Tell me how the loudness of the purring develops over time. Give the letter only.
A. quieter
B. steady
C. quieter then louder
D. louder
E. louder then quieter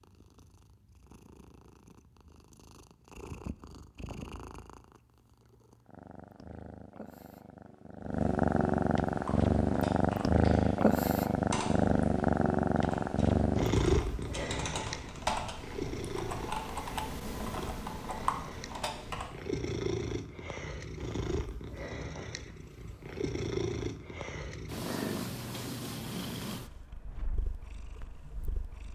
E.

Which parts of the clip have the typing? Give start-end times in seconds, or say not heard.
9.1-19.3.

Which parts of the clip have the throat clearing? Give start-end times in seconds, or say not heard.
not heard.